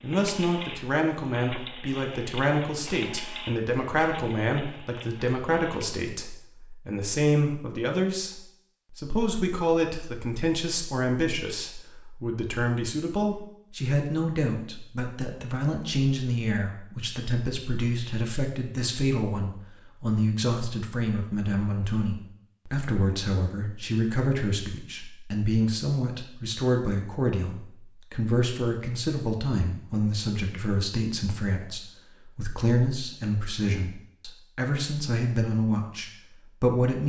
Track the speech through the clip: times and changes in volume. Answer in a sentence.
The speech can be heard from 0.0 to 37.0 s, at a steady volume.